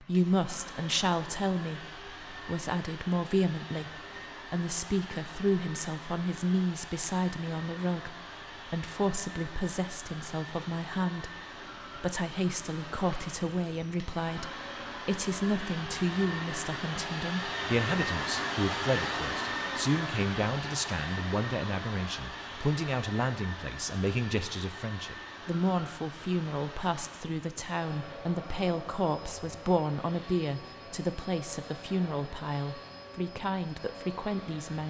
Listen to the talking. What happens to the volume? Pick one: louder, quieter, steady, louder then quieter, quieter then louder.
steady.